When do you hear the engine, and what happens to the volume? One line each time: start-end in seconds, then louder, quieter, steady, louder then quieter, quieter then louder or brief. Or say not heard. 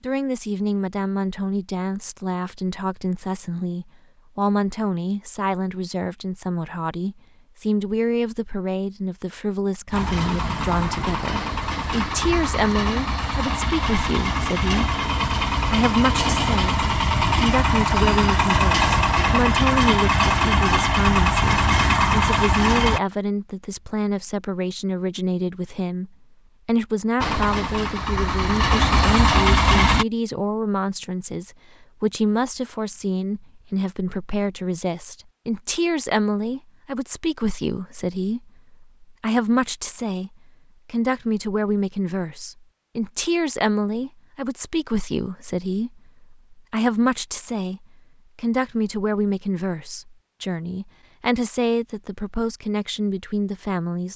9.9-23.0 louder
27.2-30.1 brief.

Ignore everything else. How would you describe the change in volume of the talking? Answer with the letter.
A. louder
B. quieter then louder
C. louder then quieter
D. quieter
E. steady
E.